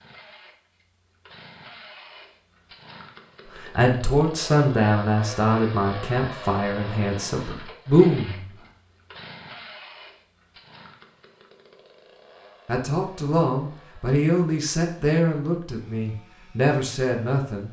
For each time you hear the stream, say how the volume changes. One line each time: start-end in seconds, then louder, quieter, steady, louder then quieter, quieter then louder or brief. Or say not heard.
not heard.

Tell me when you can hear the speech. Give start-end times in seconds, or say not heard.
3.6-8.4, 12.7-17.6.